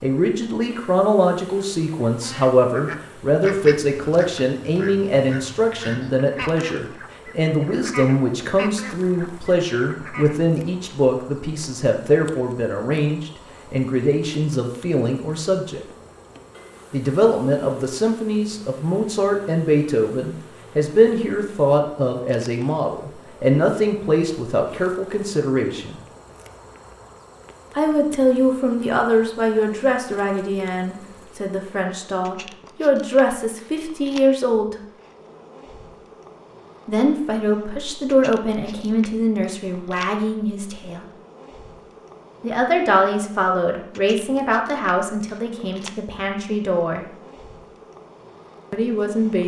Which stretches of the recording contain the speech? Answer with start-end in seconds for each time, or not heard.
0.0-15.8, 16.9-25.9, 27.8-34.8, 36.9-41.0, 42.4-47.0, 48.7-49.4.